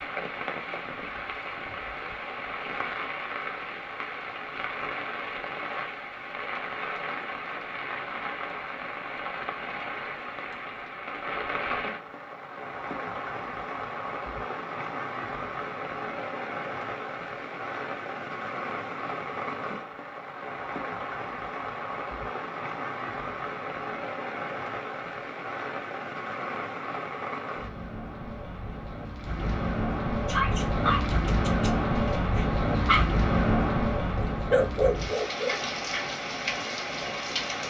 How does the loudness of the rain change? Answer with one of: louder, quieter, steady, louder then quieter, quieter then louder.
louder.